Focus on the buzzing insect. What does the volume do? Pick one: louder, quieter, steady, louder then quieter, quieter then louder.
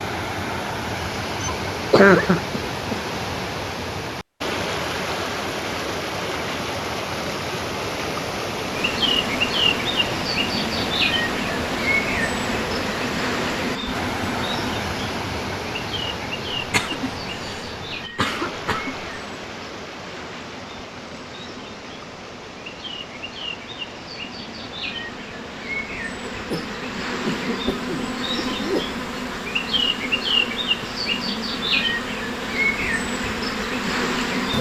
quieter then louder.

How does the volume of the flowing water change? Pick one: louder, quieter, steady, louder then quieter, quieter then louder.
quieter.